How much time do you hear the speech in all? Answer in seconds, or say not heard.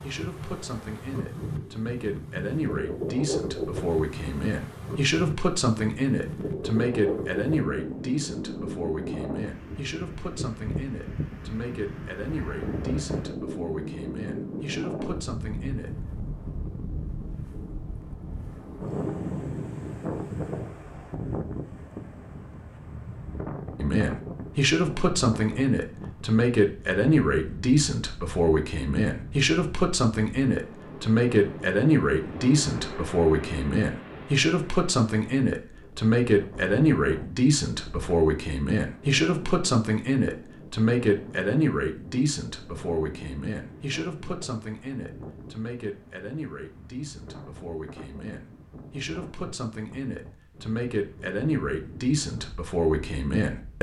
46 s.